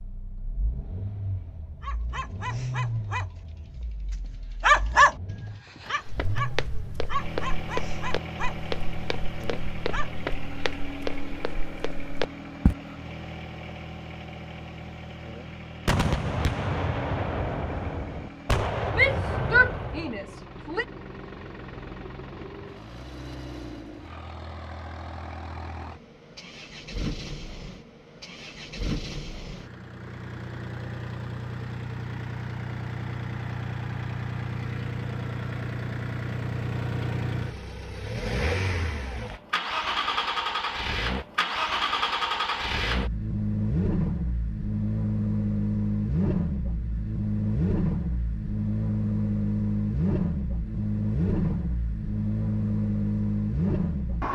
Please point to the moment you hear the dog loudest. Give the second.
5 s.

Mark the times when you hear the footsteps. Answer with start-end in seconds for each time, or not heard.
6.0-12.8.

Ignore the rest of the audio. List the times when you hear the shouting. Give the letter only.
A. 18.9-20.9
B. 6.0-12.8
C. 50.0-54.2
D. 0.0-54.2
A.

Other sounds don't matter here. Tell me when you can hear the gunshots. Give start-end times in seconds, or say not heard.
15.8-20.1.